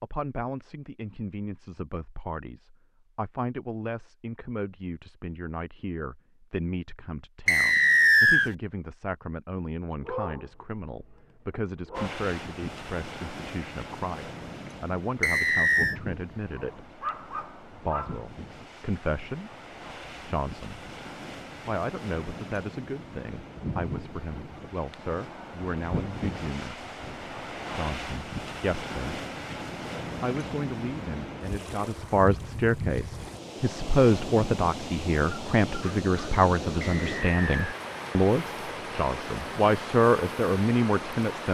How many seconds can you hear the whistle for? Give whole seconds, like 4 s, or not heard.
3 s.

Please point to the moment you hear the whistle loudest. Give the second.
8 s.